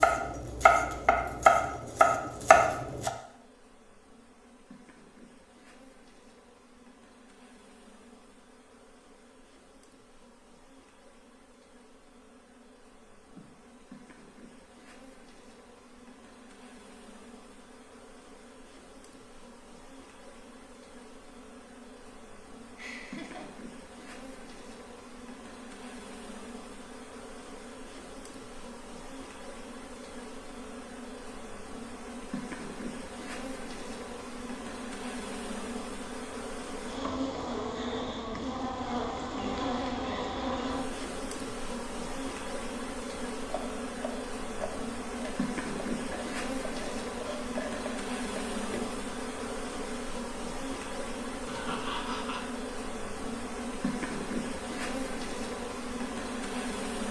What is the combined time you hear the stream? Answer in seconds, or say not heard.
not heard.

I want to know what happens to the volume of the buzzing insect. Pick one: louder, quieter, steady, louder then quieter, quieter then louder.
louder.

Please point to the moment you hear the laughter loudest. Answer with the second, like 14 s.
52 s.